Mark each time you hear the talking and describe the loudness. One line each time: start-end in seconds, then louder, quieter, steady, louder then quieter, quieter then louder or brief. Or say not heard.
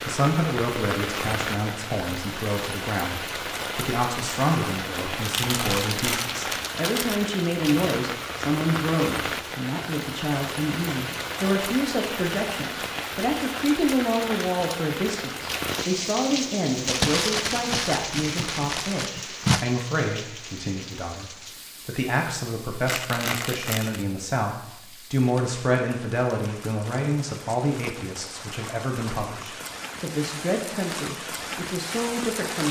0.0-32.6 steady.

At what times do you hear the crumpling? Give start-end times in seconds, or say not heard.
5.2-7.2, 16.9-19.6, 22.9-24.1.